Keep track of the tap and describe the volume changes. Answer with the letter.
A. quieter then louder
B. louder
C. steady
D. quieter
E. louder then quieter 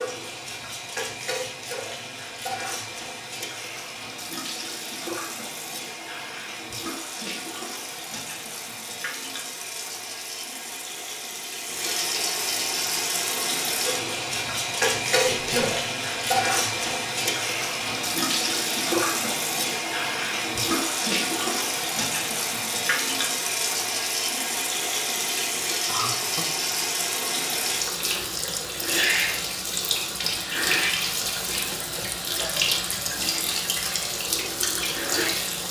B.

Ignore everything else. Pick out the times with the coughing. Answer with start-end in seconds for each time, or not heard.
15.2-15.8, 25.9-26.5.